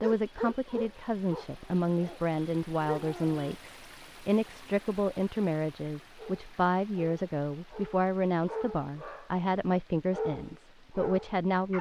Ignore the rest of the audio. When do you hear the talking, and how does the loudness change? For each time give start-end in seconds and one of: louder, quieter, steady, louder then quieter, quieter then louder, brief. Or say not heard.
0.0-11.7 steady.